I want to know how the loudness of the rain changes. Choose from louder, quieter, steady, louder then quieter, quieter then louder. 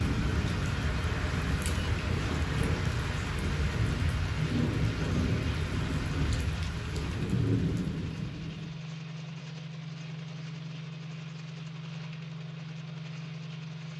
steady.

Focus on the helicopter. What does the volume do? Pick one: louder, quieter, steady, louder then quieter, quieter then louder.
steady.